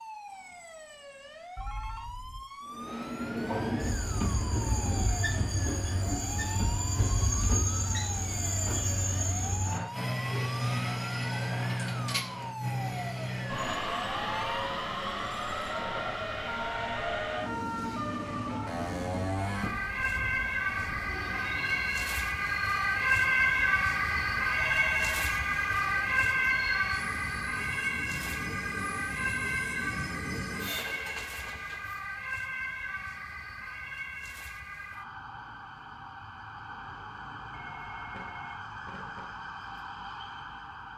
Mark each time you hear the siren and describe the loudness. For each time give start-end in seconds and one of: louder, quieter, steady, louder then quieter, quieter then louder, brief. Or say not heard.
0.0-40.9 louder then quieter.